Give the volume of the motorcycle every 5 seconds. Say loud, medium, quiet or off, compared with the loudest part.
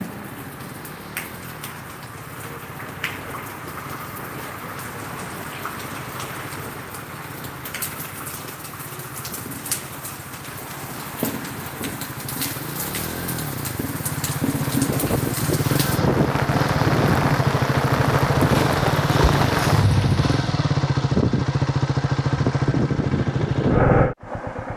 quiet, quiet, medium, loud, loud.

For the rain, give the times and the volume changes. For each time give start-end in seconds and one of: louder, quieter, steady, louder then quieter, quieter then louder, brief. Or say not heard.
0.0-20.4 louder.